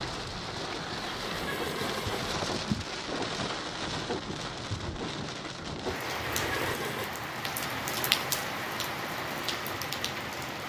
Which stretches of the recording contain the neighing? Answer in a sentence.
You can hear the neighing from 1.1 to 2.4 s and from 6.1 to 7.1 s.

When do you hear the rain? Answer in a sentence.
The rain can be heard from 0.0 to 10.6 s.